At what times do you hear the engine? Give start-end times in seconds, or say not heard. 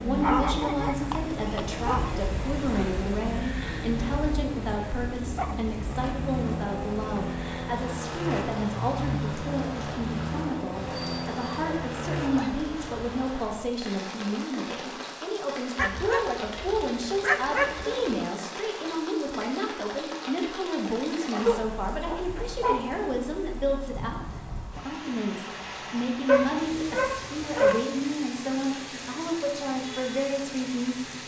0.0-12.6.